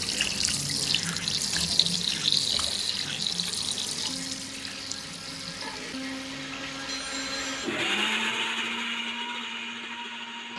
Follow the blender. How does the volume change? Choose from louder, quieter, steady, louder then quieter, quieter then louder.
louder.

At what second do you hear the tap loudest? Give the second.
2 s.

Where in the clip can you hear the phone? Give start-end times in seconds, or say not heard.
6.8-7.7.